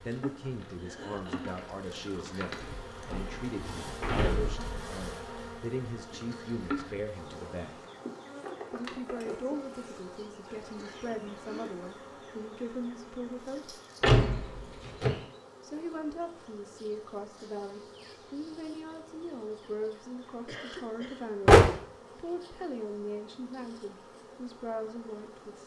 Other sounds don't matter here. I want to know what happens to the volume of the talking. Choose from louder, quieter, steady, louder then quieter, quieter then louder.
steady.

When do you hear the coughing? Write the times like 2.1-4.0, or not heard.
0.8-1.6, 10.4-11.8, 20.4-21.2.